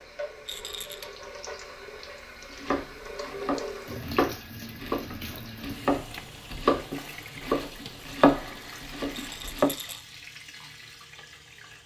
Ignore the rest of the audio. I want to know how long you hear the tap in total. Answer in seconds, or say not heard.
12 s.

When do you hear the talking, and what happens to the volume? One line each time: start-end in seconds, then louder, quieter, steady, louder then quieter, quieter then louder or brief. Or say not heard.
not heard.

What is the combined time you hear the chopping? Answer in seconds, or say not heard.
7 s.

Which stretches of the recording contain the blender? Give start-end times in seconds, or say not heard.
not heard.